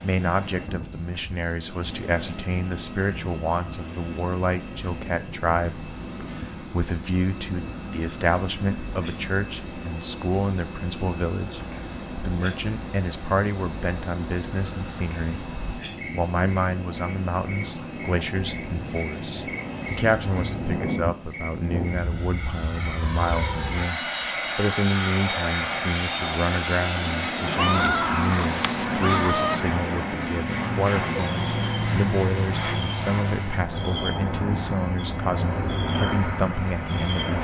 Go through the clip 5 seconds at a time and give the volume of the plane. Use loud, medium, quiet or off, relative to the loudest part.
medium, medium, medium, medium, loud, loud, loud, loud.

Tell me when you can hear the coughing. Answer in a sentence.
The coughing can't be heard in this clip.